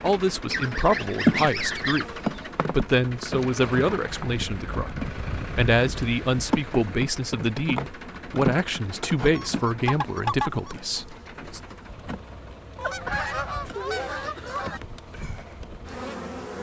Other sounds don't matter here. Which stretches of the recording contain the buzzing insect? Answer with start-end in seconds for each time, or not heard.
0.0-16.5.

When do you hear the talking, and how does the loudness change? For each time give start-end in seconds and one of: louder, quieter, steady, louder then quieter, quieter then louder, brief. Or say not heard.
0.0-11.6 steady.